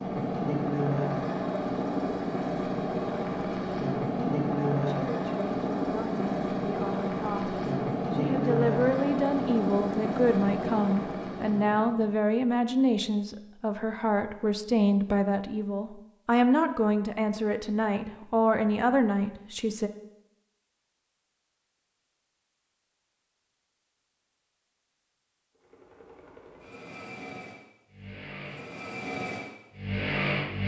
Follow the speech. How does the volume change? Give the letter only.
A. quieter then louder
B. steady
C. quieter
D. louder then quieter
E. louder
E.